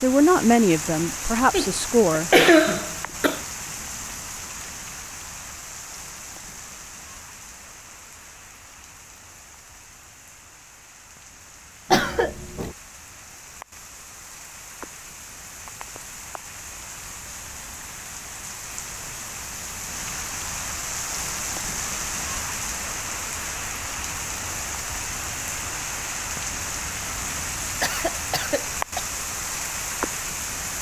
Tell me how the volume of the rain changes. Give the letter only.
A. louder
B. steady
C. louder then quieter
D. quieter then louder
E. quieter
D.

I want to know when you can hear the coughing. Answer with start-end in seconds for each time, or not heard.
1.5-3.4, 11.9-12.8, 27.4-29.1.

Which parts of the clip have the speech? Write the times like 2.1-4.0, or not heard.
0.0-2.4.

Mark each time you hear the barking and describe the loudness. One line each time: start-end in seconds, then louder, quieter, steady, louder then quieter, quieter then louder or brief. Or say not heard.
not heard.